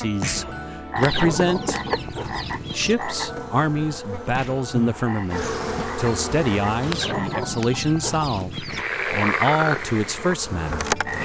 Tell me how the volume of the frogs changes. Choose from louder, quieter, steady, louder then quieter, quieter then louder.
quieter then louder.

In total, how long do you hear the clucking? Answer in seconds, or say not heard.
4 s.